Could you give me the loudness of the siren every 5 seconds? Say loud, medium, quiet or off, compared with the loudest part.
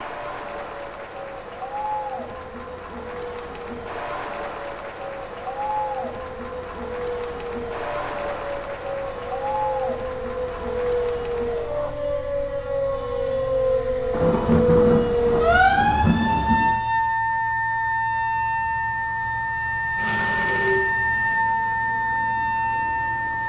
quiet, medium, loud, loud, loud.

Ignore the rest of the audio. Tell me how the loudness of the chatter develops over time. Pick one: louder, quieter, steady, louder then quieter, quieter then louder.
steady.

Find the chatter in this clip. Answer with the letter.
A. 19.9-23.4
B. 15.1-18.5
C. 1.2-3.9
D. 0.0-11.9
D.